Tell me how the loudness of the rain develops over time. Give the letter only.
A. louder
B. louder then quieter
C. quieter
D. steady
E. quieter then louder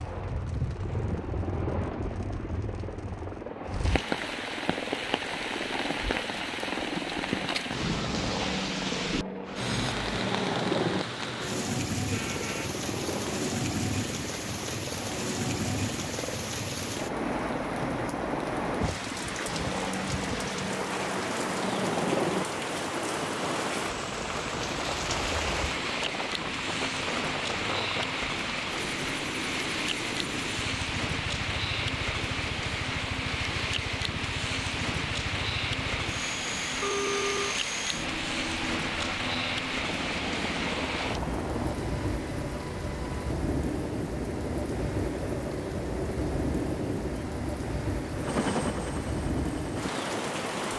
D.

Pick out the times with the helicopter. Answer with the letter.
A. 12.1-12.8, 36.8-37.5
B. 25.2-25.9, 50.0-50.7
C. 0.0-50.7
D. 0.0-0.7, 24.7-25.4
C.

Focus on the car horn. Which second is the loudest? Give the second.
37 s.